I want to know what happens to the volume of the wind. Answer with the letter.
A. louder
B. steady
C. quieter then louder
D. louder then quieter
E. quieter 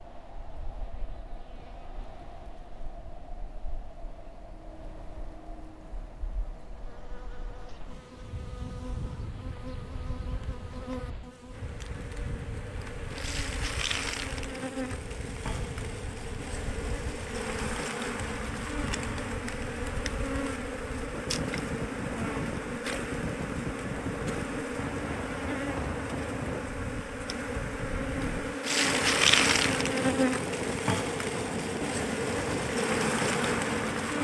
A.